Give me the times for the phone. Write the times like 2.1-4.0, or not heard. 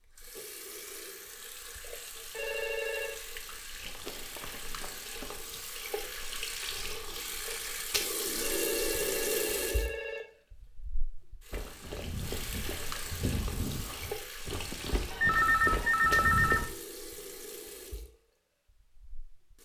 2.3-3.1, 8.3-10.2, 15.1-16.7.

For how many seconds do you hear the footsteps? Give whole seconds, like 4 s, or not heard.
7 s.